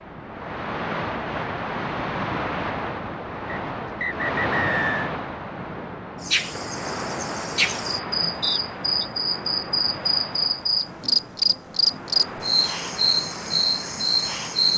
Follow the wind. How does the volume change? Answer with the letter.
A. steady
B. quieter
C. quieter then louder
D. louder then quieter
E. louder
B.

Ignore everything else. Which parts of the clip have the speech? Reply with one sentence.
You can't hear the speech here.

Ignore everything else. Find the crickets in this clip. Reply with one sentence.
You can hear the crickets from 6.2 to 14.7 s.